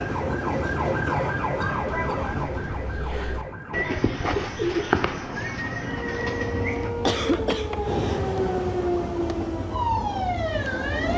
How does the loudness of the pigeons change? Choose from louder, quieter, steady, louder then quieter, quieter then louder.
louder then quieter.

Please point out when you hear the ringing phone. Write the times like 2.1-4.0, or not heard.
not heard.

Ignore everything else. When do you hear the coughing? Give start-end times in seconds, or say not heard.
1.1-2.4, 7.0-8.2.